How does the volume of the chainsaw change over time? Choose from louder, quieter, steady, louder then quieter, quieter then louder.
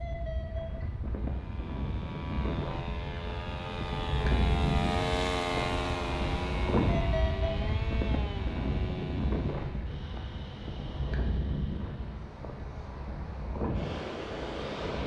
louder then quieter.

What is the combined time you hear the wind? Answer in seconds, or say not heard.
15 s.